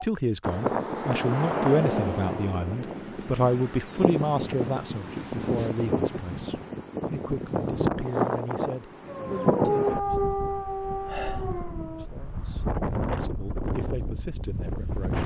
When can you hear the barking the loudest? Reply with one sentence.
The loudest moment of the barking is at 10 seconds.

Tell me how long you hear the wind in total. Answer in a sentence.
You can hear the wind for 15 seconds altogether.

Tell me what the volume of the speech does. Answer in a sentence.
The loudness of the speech goes down.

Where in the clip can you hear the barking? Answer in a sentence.
The barking can be heard from 9.1 to 12.1 s.